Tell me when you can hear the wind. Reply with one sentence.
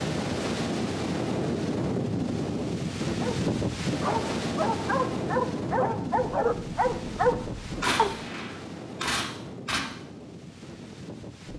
The wind can be heard from 0.0 to 11.5 s.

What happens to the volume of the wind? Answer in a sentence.
The loudness of the wind goes down.